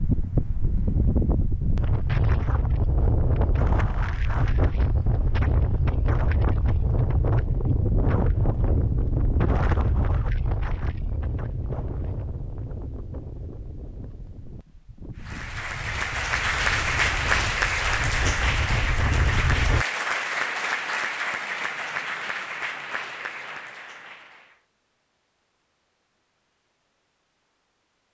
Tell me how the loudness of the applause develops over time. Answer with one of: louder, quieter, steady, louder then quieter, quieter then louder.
quieter.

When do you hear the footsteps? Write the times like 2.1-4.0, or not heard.
not heard.